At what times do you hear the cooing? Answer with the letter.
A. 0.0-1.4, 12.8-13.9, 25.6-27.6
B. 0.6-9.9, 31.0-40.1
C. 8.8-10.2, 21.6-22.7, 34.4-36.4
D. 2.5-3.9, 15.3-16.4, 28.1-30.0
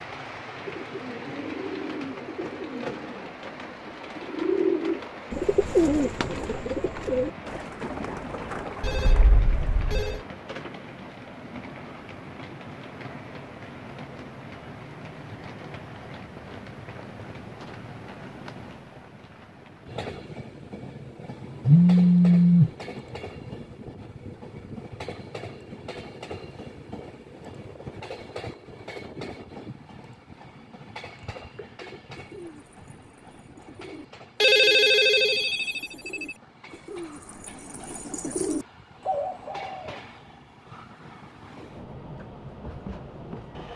B.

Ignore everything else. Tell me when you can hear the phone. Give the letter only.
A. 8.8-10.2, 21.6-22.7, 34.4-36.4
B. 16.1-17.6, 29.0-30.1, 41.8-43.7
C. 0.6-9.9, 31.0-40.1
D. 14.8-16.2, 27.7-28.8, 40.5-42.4
A.